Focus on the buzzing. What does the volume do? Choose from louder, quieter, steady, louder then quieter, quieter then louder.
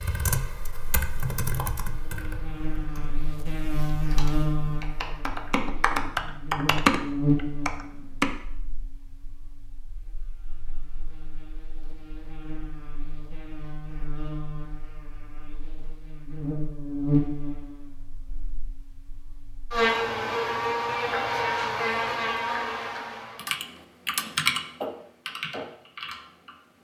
quieter then louder.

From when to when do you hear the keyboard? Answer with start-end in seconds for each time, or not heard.
0.0-8.3, 23.4-26.6.